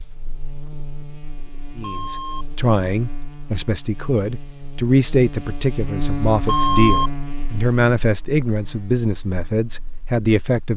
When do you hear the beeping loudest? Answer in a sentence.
The volume of the beeping peaks at 7 seconds.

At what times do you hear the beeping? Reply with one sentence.
You can hear the beeping from 1.8 to 2.5 s and from 6.5 to 7.1 s.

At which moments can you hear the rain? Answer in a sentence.
The rain can't be heard in this clip.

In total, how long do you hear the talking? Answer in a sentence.
The talking can be heard for 9 seconds in total.